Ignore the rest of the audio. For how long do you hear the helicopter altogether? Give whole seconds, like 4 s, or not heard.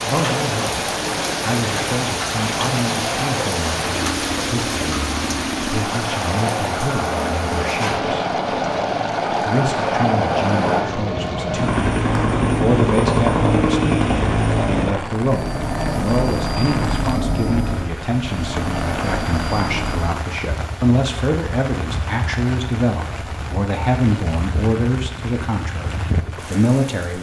20 s.